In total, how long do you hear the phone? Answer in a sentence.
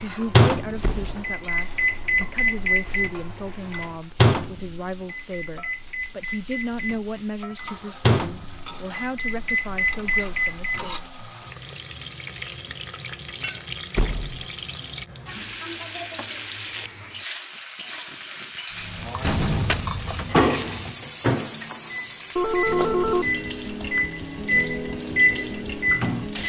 You can hear the phone for 2 seconds altogether.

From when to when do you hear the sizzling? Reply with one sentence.
The sizzling can be heard from 0.0 to 26.4 s.